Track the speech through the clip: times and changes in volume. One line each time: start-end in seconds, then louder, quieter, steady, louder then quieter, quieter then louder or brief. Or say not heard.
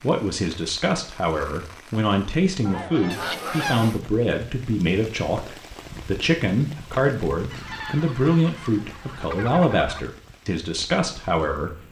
0.0-11.8 steady.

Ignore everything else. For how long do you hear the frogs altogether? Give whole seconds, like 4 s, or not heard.
not heard.